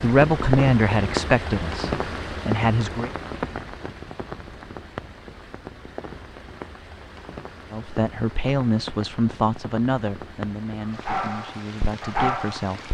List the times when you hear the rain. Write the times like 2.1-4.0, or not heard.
0.0-12.8.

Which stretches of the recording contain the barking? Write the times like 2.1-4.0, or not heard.
10.9-12.8.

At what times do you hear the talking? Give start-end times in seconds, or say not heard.
0.0-3.1, 7.7-12.8.